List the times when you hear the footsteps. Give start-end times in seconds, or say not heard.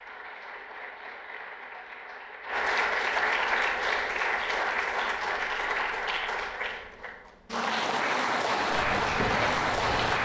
8.7-10.2.